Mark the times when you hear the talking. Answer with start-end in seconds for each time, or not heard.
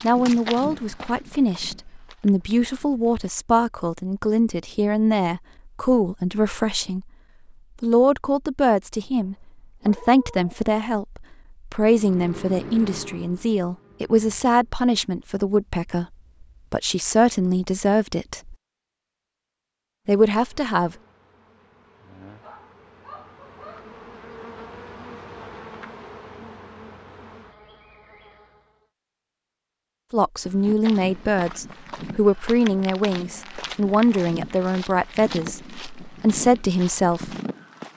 0.0-7.0, 7.8-16.1, 16.7-18.6, 20.1-20.9, 30.1-37.4.